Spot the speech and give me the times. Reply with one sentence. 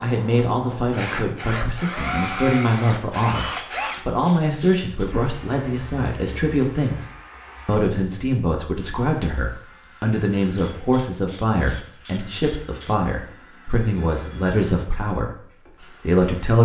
You can hear the speech from 0.0 to 16.6 s.